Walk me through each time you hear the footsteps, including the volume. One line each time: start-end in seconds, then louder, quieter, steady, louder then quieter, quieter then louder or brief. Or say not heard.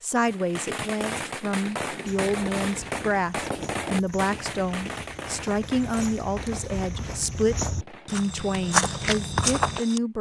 2.0-10.0 louder.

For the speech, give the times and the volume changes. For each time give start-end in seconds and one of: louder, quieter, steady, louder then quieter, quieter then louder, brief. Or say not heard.
0.0-10.1 steady.